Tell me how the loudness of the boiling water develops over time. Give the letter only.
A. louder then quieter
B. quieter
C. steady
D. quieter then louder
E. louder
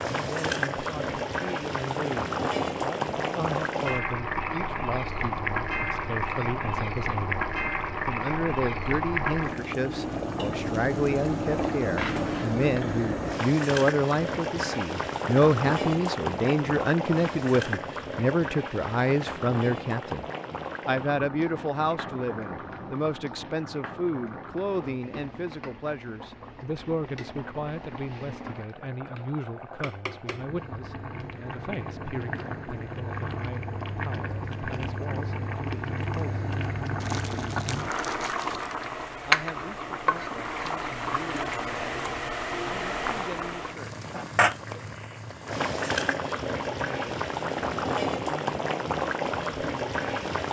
D.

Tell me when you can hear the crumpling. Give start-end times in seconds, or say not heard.
37.0-38.8.